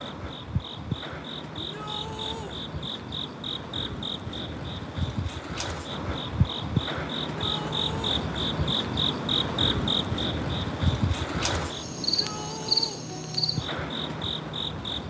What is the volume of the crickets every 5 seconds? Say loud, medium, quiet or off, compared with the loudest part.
medium, loud, loud.